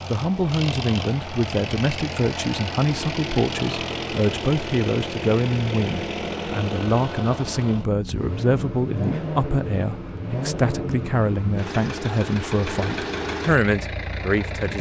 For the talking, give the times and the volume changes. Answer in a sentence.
You can hear the talking from 0.1 to 14.7 s, at a steady volume.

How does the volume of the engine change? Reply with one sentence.
The volume of the engine stays about the same.